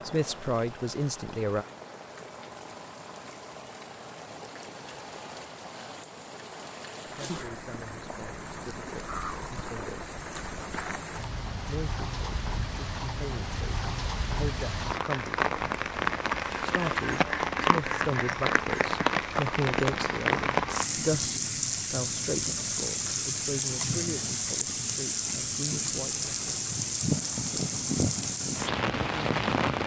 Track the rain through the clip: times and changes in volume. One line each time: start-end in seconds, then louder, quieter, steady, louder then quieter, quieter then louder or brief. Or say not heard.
0.0-29.8 louder.